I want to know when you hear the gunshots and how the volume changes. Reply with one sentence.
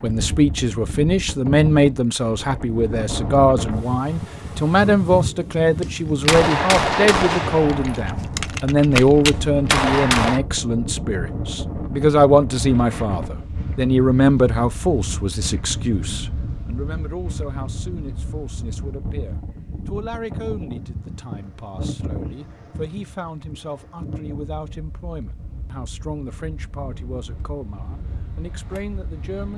You can hear the gunshots from 5.8 to 10.4 s, getting quieter then louder.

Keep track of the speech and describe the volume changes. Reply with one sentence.
The loudness of the speech goes down.